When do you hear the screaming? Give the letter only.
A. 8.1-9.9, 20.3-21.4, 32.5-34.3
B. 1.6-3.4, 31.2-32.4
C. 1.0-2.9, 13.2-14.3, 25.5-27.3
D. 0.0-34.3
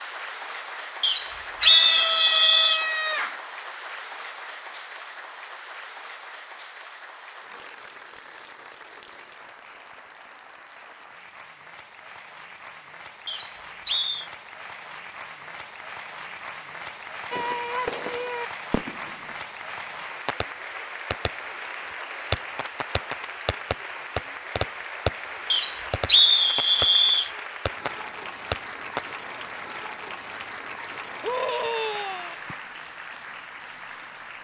B.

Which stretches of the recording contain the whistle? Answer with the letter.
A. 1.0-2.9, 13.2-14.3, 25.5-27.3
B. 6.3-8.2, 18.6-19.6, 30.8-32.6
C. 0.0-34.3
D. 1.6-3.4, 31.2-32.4
A.